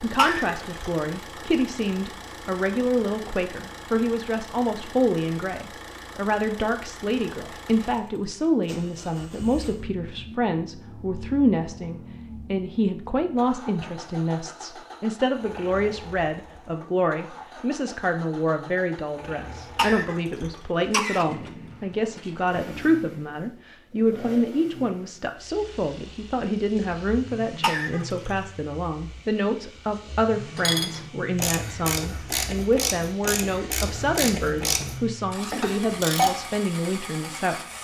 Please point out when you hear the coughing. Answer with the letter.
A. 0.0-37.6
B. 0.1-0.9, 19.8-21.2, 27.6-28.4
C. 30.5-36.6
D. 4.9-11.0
B.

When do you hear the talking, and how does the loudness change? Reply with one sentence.
You can hear the talking from 0.0 to 37.6 s, at a steady volume.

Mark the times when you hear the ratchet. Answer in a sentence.
You can hear the ratchet from 30.5 to 36.6 s.